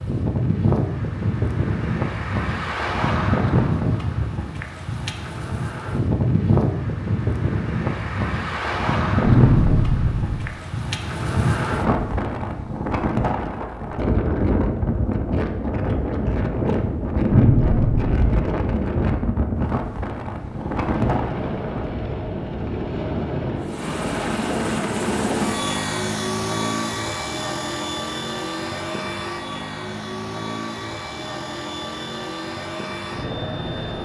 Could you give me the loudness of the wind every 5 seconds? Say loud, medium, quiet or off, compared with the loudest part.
loud, loud, loud, loud, medium, off, off.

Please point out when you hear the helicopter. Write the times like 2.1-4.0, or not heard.
20.4-34.0.